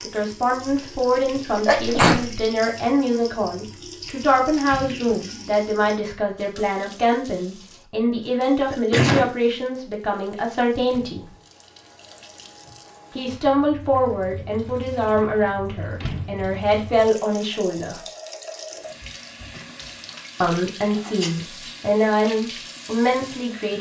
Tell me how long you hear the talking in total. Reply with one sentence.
You can hear the talking for 19 seconds altogether.